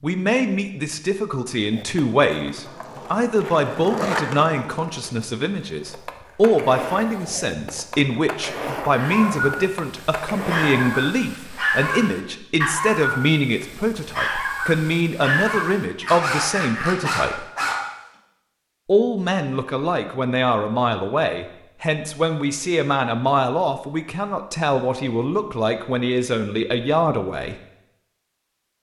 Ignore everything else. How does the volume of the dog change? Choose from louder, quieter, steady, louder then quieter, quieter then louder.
steady.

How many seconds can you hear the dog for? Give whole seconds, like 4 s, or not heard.
9 s.